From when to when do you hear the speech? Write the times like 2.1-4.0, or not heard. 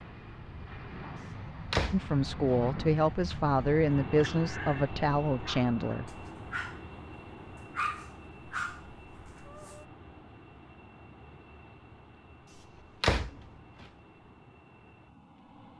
1.9-6.2.